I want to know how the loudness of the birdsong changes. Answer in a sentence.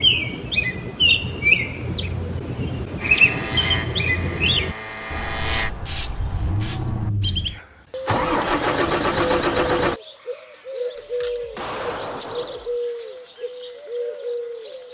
The loudness of the birdsong goes down.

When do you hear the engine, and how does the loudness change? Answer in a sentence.
The engine can be heard from 3.0 to 10.0 s, getting louder.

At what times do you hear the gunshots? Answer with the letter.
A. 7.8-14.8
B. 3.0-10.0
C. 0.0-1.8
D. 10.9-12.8
D.